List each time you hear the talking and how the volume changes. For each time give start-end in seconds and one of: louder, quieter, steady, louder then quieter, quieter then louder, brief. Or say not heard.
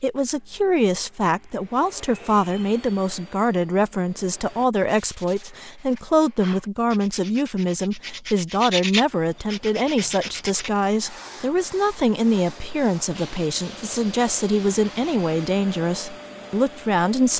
0.0-17.3 steady.